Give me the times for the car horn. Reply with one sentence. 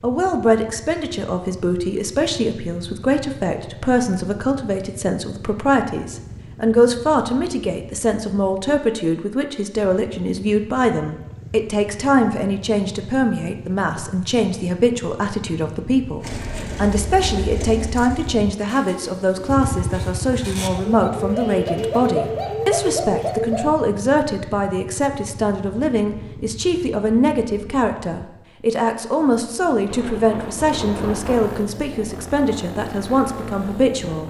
You can't hear the car horn here.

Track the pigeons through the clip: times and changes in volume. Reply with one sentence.
The pigeons can be heard from 16.2 to 23.7 s, getting quieter then louder.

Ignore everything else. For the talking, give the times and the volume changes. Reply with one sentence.
You can hear the talking from 0.0 to 34.2 s, at a steady volume.